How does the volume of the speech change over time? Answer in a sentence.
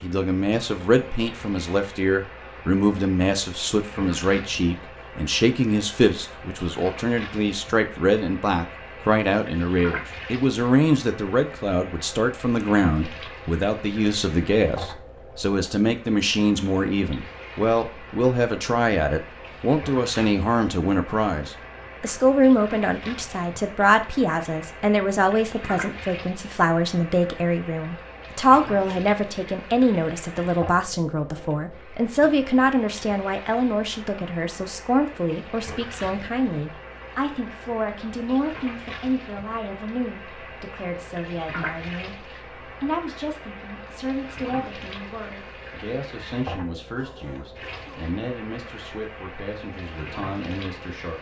The loudness of the speech goes down.